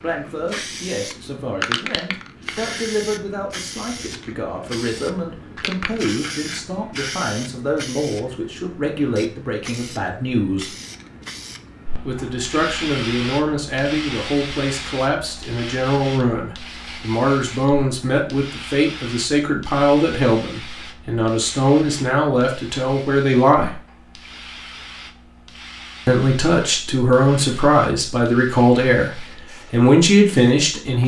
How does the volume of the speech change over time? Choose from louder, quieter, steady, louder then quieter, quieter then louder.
louder.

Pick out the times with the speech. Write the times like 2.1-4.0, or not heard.
0.0-10.8, 12.0-23.8, 26.1-31.0.